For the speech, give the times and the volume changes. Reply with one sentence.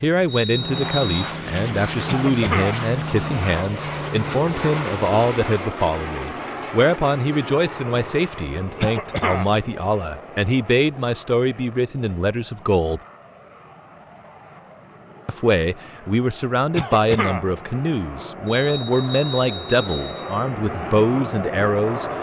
The speech can be heard from 0.0 to 13.0 s, at a steady volume; and from 15.2 to 22.1 s, at a steady volume.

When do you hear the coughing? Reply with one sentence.
The coughing can be heard from 2.0 to 2.9 s, from 8.8 to 9.6 s and from 16.7 to 17.5 s.